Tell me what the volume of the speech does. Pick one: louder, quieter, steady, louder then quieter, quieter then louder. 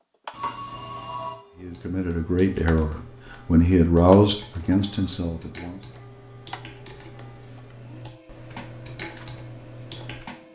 louder then quieter.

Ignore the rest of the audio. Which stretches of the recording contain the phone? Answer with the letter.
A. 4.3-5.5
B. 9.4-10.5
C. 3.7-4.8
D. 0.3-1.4
D.